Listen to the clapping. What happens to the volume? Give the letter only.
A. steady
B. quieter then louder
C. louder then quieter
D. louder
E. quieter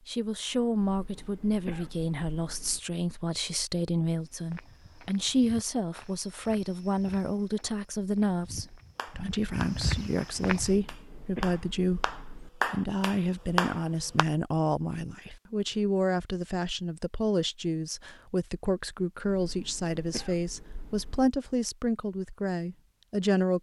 B.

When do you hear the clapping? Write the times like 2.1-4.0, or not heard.
8.9-14.2.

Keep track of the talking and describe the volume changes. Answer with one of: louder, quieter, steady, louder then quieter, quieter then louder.
steady.